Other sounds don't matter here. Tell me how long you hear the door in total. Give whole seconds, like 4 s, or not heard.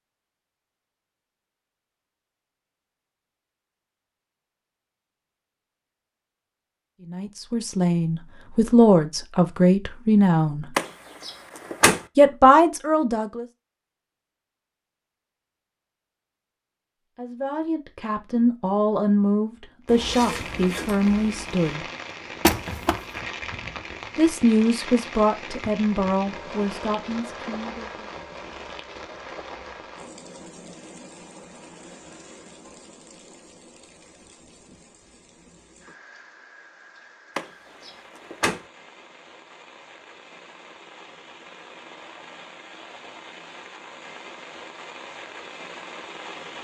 3 s.